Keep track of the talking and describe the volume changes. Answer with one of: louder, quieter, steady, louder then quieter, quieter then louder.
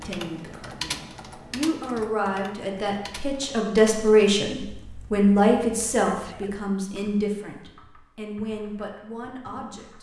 louder then quieter.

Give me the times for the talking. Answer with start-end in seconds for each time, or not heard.
0.0-9.9.